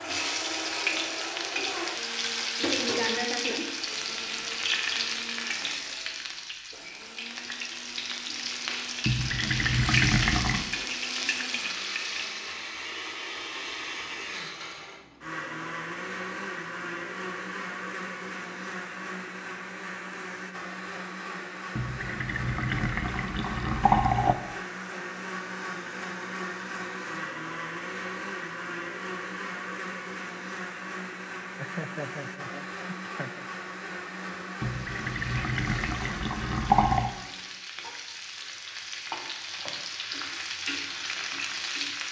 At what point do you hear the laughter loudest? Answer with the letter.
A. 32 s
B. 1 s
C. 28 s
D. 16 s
A.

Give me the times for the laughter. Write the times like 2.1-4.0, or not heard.
31.6-33.5.